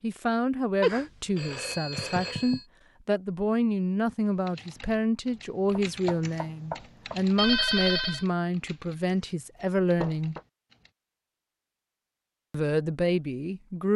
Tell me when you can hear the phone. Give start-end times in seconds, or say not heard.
0.8-2.6, 7.3-8.2.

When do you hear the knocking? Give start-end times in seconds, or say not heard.
1.9-2.6, 5.8-7.2, 10.0-10.4.